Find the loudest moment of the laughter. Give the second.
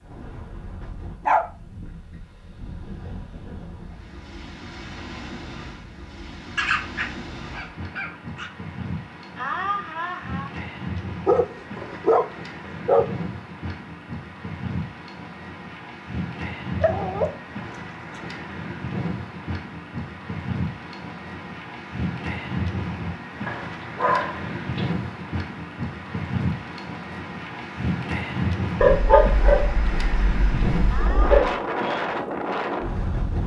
10 s.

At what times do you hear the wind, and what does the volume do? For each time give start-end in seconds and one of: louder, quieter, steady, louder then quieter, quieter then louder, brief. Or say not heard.
0.0-33.4 louder.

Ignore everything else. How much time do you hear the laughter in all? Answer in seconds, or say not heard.
2 s.